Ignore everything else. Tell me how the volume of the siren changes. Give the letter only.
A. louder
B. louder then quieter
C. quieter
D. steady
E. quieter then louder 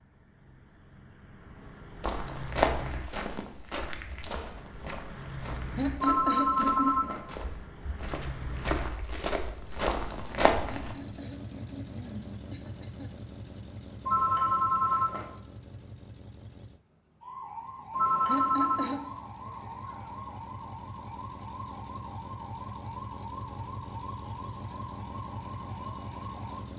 D.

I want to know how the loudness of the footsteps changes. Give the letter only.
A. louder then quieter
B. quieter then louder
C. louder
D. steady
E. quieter
B.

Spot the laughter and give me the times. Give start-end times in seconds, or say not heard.
5.8-7.1, 10.8-13.2, 18.2-19.0.